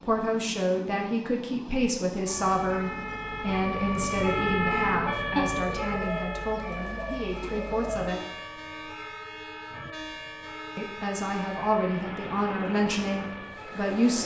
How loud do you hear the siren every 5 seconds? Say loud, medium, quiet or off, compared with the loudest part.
loud, medium, quiet.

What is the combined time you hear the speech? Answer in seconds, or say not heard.
12 s.